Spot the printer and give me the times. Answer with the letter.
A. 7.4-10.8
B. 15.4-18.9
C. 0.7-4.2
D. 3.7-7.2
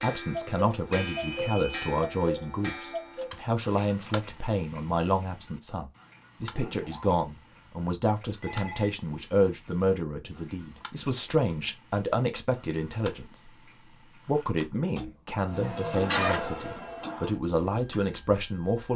B.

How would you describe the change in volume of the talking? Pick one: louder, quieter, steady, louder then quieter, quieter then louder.
steady.